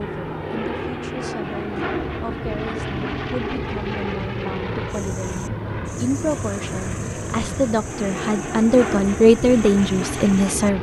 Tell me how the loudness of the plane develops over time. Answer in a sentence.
The loudness of the plane stays about the same.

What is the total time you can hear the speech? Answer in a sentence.
The speech can be heard for 11 seconds in total.